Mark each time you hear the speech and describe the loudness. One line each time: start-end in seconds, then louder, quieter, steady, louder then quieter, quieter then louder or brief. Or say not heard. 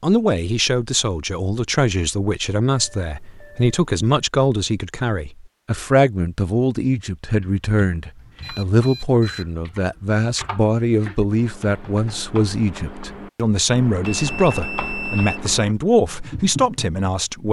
0.0-17.4 steady.